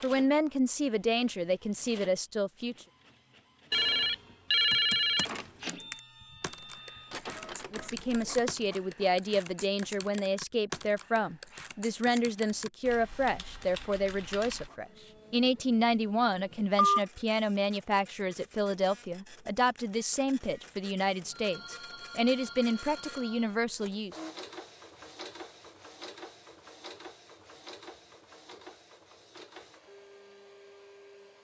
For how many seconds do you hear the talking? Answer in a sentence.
The talking can be heard for 19 seconds in total.